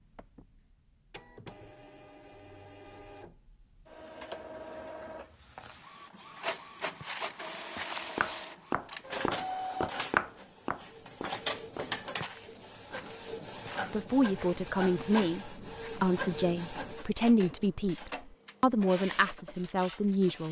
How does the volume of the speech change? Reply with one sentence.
The loudness of the speech stays about the same.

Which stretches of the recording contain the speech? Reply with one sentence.
The speech can be heard from 13.9 to 20.4 s.